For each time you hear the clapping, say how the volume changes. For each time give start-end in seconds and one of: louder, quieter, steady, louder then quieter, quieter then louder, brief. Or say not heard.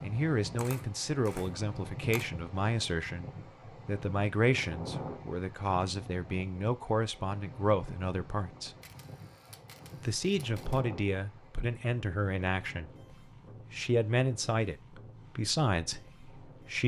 not heard.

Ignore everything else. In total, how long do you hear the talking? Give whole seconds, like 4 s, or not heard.
15 s.